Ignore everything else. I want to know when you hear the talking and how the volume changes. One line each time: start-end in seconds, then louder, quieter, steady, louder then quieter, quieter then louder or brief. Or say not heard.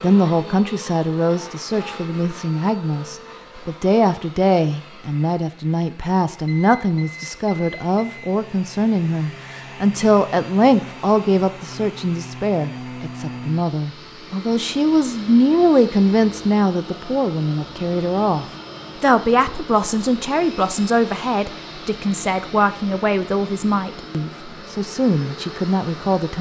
0.0-26.3 steady.